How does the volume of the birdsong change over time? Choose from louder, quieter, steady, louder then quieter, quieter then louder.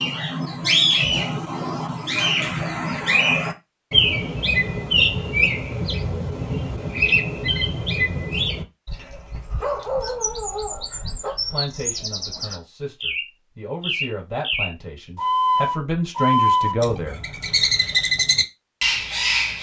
quieter then louder.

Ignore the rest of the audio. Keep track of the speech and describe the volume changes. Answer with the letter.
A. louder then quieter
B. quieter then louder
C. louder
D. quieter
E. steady
C.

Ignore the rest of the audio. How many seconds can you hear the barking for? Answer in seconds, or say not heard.
2 s.